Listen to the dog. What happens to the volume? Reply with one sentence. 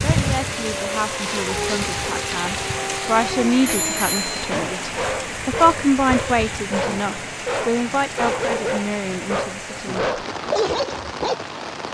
The volume of the dog goes up.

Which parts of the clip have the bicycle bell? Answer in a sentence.
The bicycle bell can be heard from 3.6 to 4.5 s.